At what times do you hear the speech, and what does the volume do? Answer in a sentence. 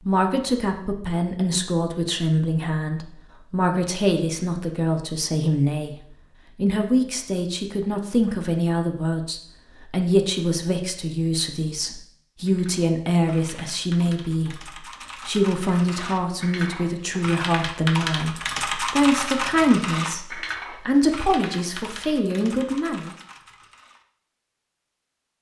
The speech can be heard from 0.1 to 23.1 s, at a steady volume.